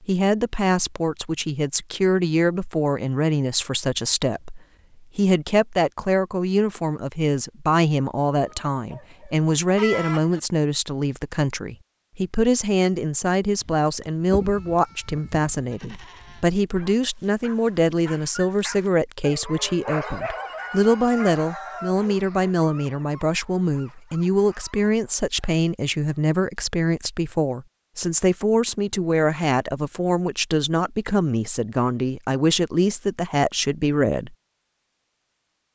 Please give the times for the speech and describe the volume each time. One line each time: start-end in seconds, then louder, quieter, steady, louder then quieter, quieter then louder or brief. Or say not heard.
0.0-34.4 steady.